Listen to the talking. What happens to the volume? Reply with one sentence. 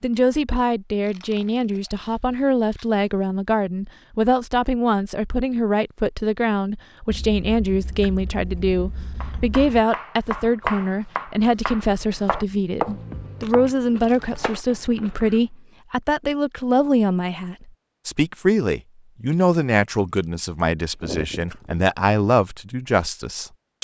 The volume of the talking stays about the same.